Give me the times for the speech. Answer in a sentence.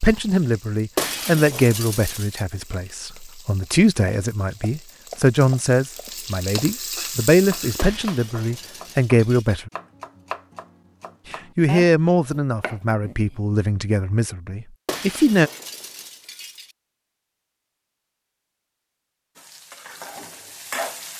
The speech can be heard from 0.0 to 9.7 s and from 11.3 to 15.5 s.